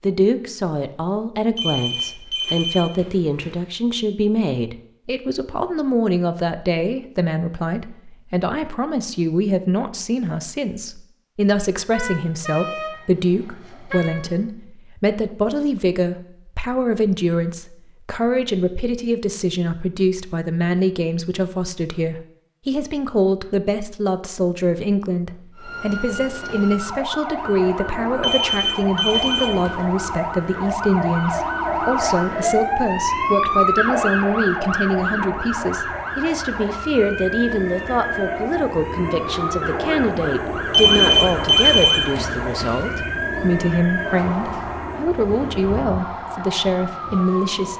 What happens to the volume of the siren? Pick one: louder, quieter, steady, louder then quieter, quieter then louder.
louder then quieter.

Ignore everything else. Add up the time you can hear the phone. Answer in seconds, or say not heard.
6 s.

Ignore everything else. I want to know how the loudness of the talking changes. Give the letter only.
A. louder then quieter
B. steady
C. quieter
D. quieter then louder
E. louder
B.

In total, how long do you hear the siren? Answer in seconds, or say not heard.
22 s.